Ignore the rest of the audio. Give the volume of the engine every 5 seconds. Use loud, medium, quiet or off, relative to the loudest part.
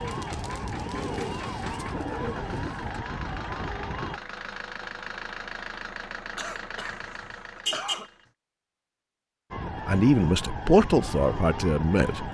loud, loud, off.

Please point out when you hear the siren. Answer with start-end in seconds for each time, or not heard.
0.0-4.2, 9.5-12.2.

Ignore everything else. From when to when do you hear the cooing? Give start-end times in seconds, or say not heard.
0.0-3.0.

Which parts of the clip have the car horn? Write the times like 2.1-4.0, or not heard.
6.9-8.1.